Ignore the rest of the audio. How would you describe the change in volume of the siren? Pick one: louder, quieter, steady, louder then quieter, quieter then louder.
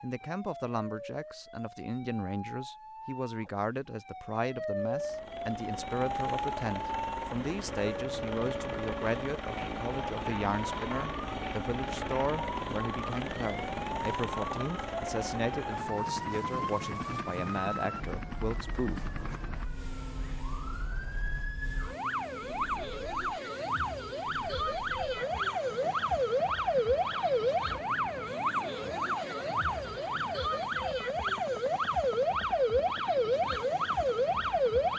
louder.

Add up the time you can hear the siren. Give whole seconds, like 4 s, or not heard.
35 s.